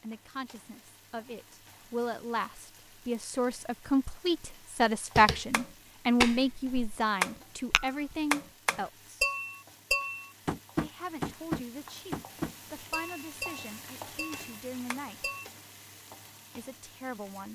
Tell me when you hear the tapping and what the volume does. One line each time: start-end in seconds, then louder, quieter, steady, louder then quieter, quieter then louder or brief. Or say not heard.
5.2-15.4 quieter.